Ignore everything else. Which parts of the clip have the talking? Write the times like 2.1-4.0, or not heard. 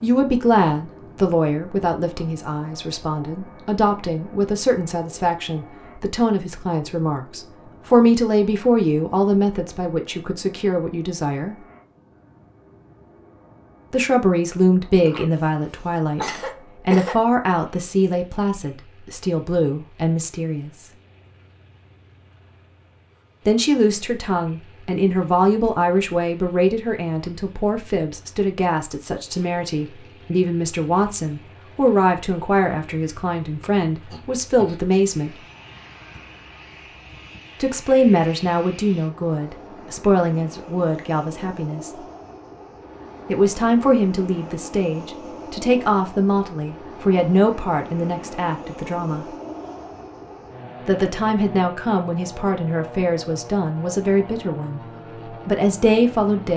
0.0-11.6, 13.9-20.9, 23.4-35.4, 37.6-42.0, 43.2-49.2, 50.9-56.5.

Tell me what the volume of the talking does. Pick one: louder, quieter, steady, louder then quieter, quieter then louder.
steady.